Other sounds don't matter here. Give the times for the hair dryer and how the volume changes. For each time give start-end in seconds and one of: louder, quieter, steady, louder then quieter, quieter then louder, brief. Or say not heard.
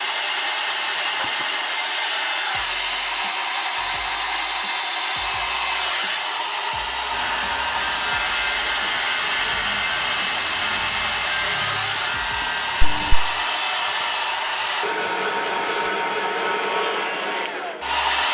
0.0-18.2 steady.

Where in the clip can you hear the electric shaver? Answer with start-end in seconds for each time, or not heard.
7.1-15.9.